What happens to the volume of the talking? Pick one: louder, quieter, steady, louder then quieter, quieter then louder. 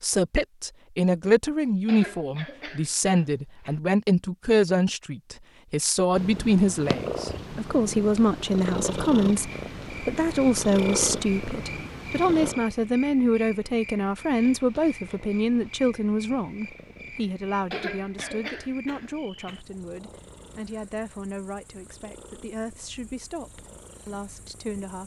quieter.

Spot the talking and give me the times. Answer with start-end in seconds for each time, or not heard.
0.0-25.0.